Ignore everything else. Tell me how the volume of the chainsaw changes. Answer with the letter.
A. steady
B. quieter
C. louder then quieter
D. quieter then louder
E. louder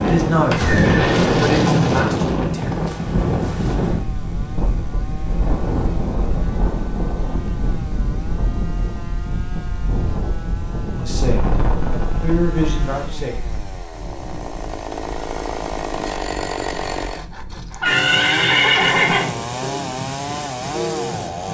E.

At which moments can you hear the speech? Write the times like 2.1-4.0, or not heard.
0.0-2.7, 10.9-13.3.